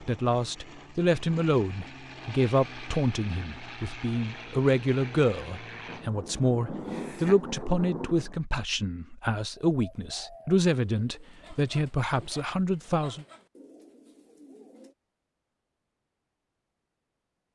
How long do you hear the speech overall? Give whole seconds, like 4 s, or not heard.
13 s.